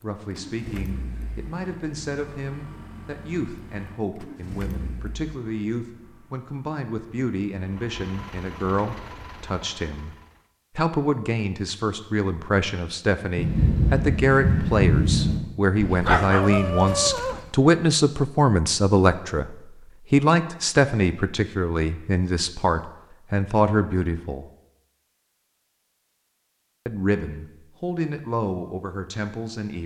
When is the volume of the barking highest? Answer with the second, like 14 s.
16 s.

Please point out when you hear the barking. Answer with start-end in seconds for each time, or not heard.
15.8-17.5.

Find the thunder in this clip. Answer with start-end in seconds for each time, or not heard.
13.3-15.4.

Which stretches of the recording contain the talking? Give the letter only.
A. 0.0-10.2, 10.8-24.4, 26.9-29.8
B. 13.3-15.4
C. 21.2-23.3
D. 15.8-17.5
A.